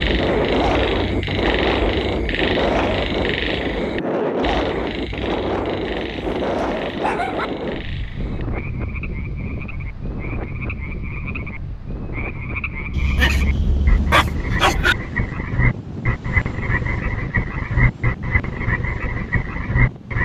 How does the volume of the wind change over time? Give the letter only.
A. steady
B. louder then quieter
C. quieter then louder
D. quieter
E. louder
D.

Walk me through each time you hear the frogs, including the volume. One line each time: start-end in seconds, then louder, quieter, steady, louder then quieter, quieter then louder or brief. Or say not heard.
0.0-20.2 quieter then louder.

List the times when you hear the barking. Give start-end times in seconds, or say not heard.
6.0-7.5, 12.9-14.9.